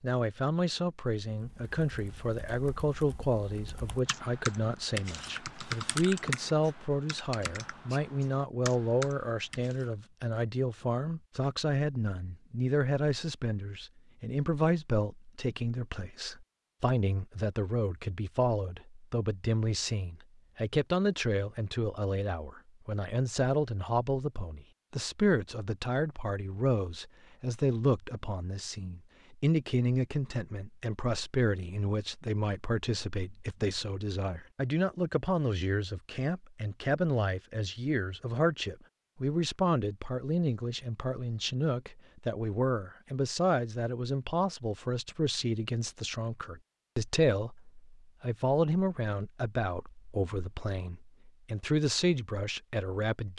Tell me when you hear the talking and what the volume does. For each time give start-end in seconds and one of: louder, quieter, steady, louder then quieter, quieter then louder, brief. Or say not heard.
0.0-53.3 steady.